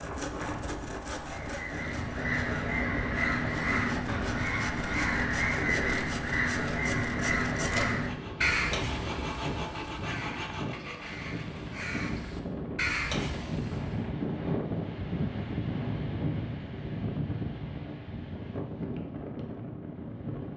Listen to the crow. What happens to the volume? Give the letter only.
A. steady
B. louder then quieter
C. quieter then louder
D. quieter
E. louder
C.